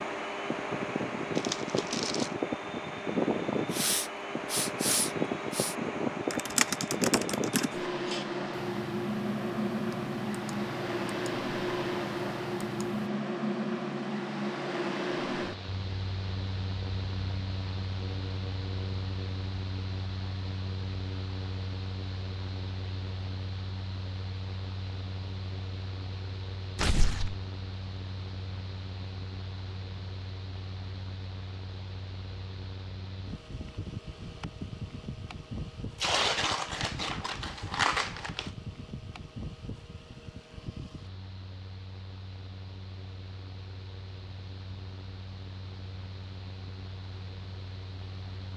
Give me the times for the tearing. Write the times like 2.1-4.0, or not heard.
1.4-2.3, 26.8-27.4, 36.0-38.5.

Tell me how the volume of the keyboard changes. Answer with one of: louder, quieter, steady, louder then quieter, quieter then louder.
quieter.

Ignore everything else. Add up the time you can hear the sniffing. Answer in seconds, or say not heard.
2 s.